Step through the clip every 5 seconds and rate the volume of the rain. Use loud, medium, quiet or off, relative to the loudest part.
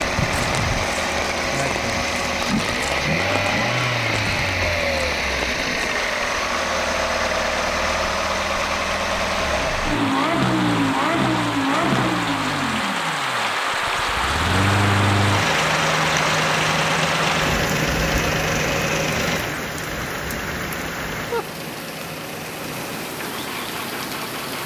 medium, medium, loud, loud, medium.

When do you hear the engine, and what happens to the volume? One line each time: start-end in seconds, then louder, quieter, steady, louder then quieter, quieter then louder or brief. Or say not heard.
0.0-24.6 quieter.